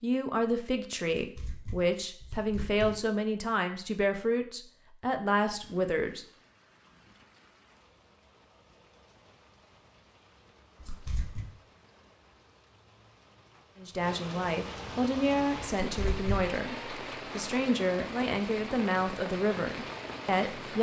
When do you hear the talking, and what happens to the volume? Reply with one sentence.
The talking can be heard from 0.0 to 6.2 s, at a steady volume; and from 13.8 to 20.7 s, at a steady volume.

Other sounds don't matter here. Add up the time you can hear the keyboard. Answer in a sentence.
You can't hear the keyboard here.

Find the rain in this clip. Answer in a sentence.
The rain can be heard from 5.5 to 20.7 s.